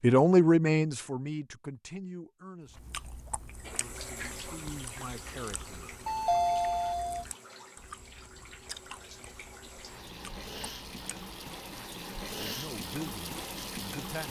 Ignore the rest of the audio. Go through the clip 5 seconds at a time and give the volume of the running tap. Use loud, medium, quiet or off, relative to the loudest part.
loud, medium, loud.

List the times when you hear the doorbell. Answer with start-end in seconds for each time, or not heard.
6.0-7.2.